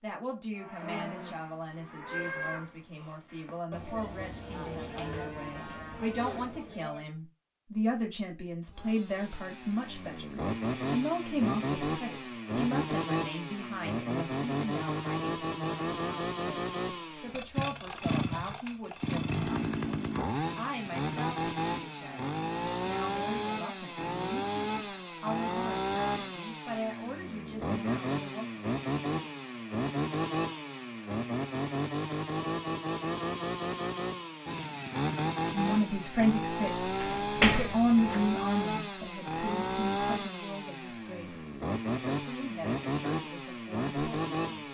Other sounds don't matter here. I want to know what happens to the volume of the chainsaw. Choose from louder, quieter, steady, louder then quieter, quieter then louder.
steady.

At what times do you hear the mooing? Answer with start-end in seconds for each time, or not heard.
0.6-7.0.